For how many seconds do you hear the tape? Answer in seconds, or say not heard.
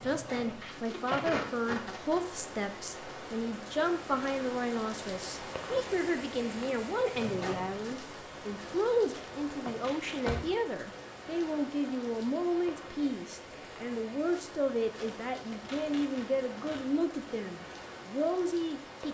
5 s.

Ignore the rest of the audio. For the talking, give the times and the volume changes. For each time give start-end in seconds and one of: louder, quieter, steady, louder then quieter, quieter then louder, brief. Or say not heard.
0.0-19.0 steady.